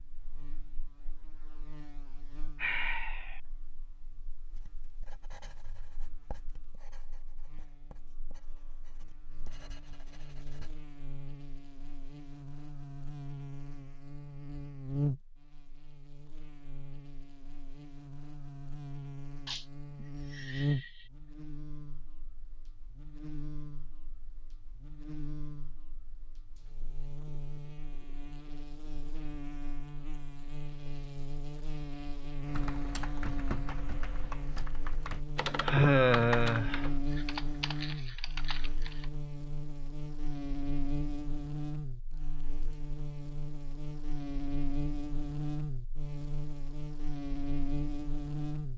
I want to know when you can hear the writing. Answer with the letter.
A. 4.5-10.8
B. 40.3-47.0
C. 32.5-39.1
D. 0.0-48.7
A.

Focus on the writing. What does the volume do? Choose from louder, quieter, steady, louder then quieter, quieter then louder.
quieter then louder.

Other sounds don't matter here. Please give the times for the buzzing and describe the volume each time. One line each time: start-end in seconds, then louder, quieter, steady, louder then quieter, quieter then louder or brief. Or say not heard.
0.0-48.7 louder.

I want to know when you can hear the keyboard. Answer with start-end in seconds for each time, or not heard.
32.5-39.1.